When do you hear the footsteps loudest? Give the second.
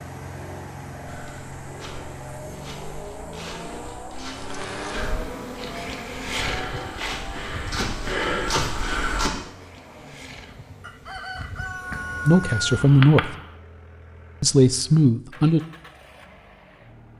8 s.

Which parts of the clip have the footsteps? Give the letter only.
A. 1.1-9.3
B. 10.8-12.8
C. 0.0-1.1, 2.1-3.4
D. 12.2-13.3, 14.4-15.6
A.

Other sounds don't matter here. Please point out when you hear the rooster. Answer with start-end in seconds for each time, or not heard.
10.8-12.8.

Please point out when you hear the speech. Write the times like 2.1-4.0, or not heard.
12.2-13.3, 14.4-15.6.